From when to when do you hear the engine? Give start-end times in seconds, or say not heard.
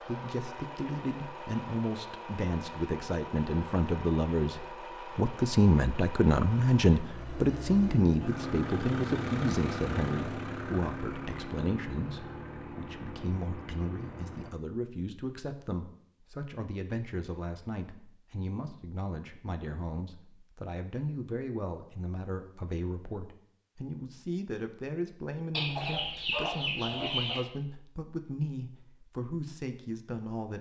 0.0-14.6.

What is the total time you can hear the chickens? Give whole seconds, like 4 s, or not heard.
2 s.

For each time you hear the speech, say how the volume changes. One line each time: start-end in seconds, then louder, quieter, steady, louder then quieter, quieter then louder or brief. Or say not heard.
0.0-30.5 quieter.